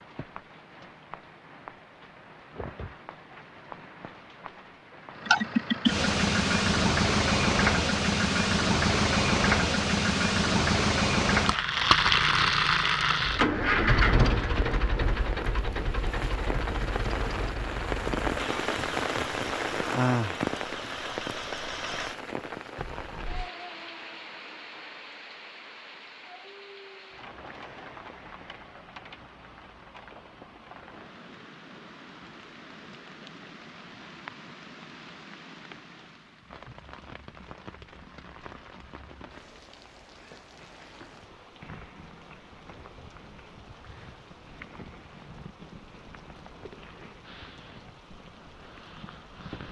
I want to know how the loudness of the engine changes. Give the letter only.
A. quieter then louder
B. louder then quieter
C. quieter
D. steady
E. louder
C.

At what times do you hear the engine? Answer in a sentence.
You can hear the engine from 5.2 to 23.5 s.